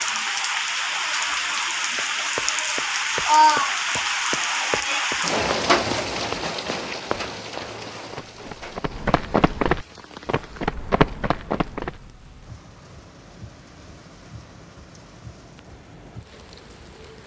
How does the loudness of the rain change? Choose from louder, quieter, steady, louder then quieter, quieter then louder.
quieter.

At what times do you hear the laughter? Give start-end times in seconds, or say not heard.
not heard.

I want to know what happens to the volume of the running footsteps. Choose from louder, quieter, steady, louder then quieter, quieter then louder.
louder.